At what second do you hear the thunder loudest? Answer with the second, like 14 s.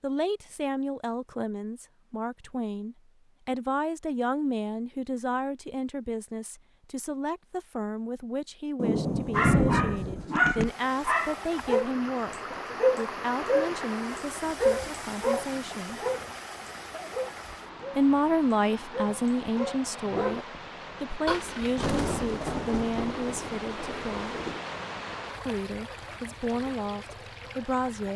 10 s.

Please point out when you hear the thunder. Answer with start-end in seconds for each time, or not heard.
8.8-10.7, 21.2-24.6.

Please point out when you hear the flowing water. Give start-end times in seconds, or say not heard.
10.6-28.1.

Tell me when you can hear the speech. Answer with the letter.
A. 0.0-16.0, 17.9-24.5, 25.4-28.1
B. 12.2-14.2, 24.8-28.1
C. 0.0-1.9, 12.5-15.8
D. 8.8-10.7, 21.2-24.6
A.